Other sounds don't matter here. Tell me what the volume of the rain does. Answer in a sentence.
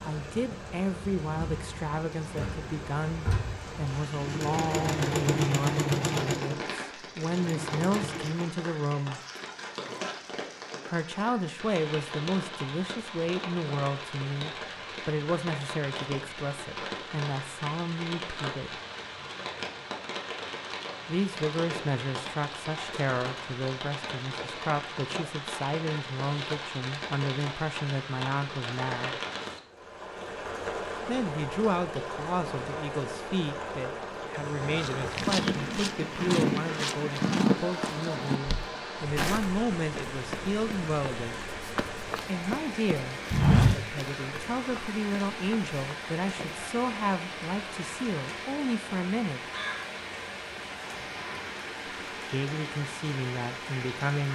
The volume of the rain stays about the same.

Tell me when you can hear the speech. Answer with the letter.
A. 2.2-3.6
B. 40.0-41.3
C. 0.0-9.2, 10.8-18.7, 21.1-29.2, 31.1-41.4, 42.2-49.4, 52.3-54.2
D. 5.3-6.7
C.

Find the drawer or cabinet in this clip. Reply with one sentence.
You can hear the drawer or cabinet from 2.2 to 3.6 s.